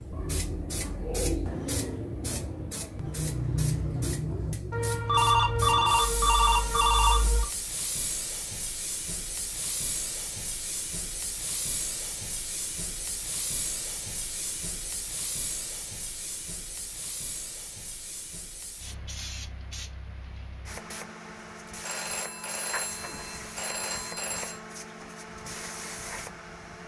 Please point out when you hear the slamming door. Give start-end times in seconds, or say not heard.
not heard.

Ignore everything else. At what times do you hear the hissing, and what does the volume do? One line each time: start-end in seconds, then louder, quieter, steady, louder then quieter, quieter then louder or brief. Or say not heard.
0.0-26.8 quieter.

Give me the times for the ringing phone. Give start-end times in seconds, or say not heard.
4.7-7.5, 21.8-24.6.